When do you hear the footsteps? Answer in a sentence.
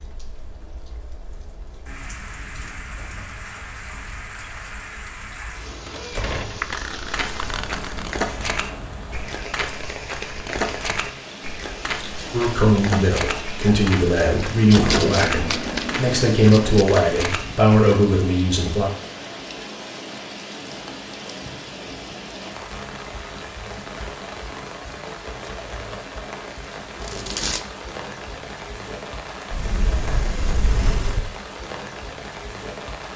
The footsteps can be heard from 7.1 to 18.0 s.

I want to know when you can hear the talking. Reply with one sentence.
You can hear the talking from 12.3 to 18.9 s.